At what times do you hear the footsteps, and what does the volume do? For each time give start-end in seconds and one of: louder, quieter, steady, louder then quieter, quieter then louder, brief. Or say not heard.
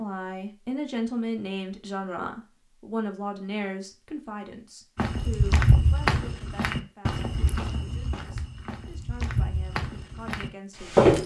5.0-11.2 quieter.